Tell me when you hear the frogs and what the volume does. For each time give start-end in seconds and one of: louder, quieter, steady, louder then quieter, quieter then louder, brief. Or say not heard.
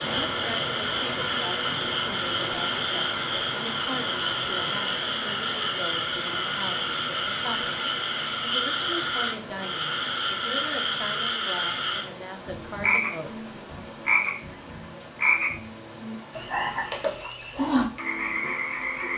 0.0-19.1 steady.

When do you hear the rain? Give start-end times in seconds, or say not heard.
0.0-19.1.